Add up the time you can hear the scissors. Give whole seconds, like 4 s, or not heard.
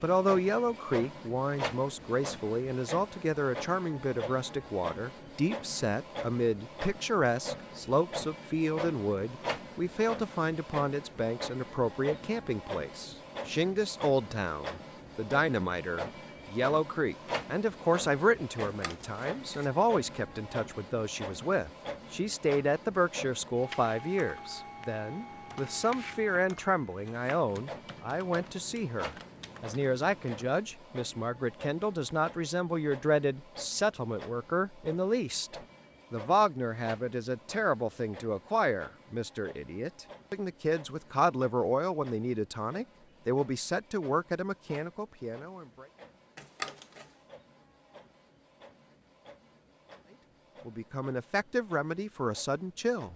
2 s.